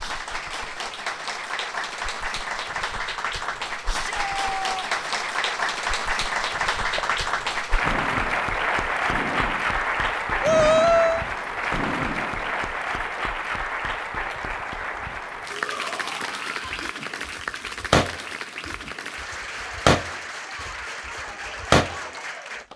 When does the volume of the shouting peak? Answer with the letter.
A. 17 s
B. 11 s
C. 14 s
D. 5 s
B.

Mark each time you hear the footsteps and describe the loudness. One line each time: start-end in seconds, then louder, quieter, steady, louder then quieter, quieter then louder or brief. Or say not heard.
not heard.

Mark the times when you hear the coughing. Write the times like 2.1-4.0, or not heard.
not heard.